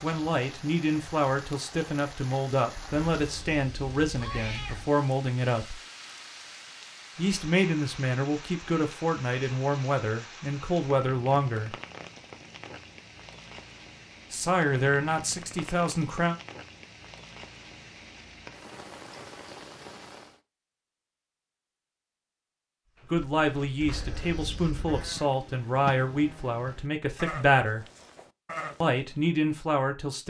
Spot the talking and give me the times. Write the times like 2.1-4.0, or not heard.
0.0-5.8, 7.2-11.8, 14.3-16.4, 23.1-27.9, 28.8-30.2.